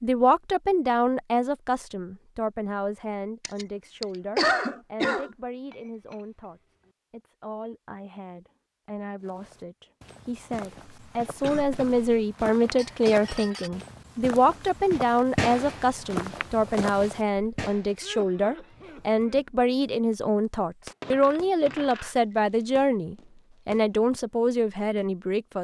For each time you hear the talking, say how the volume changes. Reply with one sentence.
The talking can be heard from 0.0 to 25.5 s, getting quieter then louder.